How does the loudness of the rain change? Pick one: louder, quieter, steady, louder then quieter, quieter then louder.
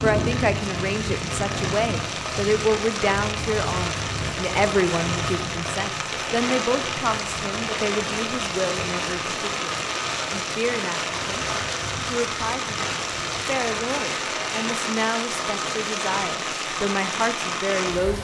steady.